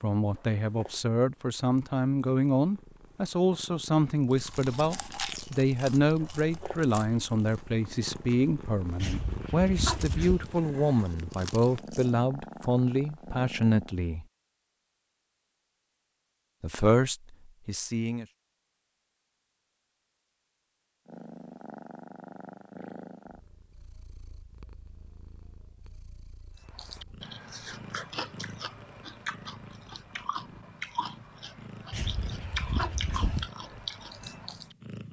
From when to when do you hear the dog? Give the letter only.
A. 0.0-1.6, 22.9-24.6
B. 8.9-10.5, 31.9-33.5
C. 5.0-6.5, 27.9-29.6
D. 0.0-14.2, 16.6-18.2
B.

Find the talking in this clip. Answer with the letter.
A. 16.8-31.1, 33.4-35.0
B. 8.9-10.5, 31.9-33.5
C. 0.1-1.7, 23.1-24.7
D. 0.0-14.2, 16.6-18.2
D.